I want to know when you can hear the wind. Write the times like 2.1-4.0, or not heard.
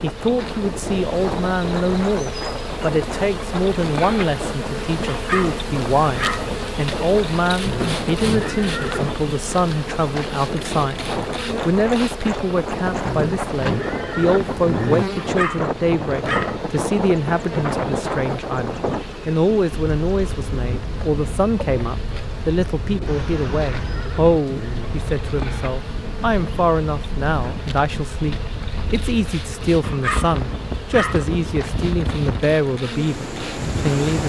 0.0-34.2.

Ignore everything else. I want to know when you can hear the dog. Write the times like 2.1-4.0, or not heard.
5.1-6.5, 15.2-16.6, 29.8-31.2.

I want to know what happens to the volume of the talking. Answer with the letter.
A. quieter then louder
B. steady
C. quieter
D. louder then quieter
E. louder
B.